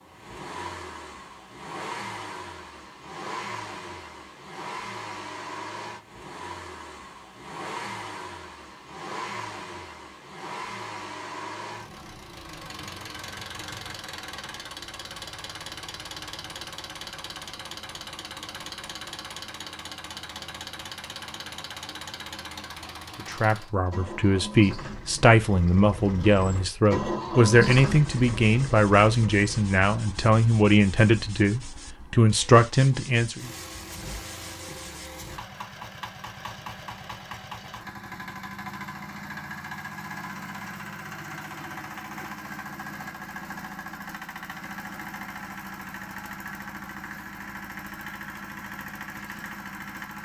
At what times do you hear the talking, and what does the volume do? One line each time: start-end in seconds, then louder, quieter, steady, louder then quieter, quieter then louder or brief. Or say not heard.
23.2-33.5 steady.